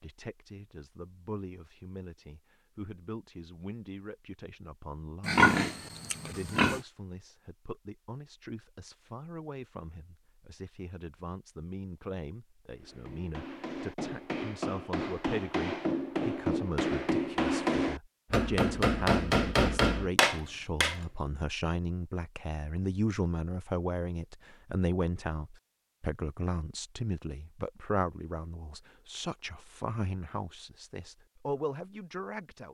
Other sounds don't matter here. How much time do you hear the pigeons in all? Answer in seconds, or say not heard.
not heard.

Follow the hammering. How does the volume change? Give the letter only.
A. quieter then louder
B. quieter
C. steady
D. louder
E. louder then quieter
D.